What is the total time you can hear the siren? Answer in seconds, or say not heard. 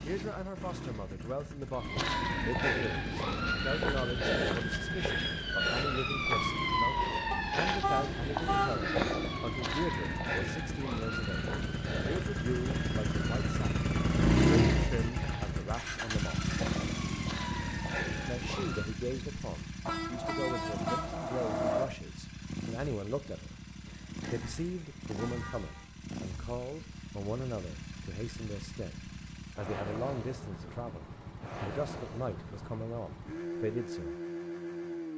17 s.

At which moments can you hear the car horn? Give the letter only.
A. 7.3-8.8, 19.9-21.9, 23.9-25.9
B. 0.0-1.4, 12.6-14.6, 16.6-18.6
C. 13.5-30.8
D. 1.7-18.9
A.